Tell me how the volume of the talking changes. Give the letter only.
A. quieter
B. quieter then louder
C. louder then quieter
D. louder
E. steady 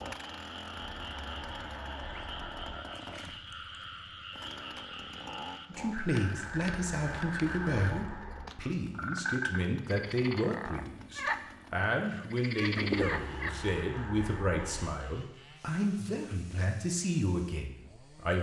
E.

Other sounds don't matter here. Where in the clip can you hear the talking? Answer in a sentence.
The talking can be heard from 5.7 to 18.3 s.